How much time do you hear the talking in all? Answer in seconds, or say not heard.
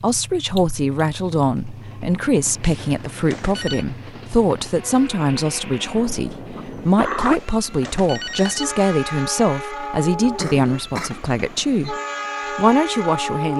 13 s.